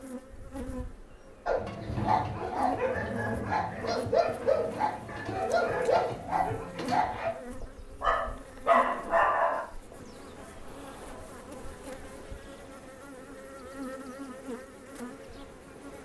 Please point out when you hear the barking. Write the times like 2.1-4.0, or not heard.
1.4-9.9.